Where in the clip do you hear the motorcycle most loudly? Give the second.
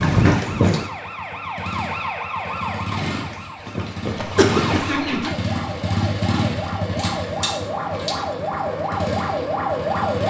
6 s.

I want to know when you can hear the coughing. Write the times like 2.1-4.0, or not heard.
4.3-5.0.